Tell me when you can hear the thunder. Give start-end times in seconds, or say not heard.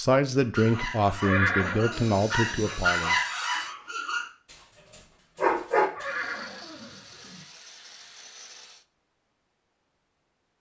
not heard.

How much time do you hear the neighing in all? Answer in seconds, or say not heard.
3 s.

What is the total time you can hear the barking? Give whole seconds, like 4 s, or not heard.
6 s.